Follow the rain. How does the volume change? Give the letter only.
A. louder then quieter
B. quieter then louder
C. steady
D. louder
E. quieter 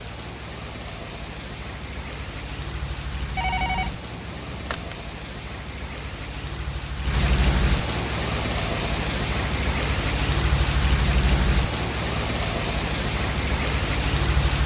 D.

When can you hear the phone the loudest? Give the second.
4 s.